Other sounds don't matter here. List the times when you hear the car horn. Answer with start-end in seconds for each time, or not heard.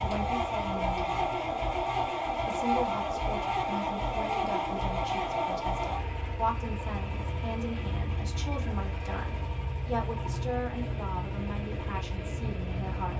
not heard.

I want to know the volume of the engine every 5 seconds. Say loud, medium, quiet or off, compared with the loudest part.
loud, medium, medium.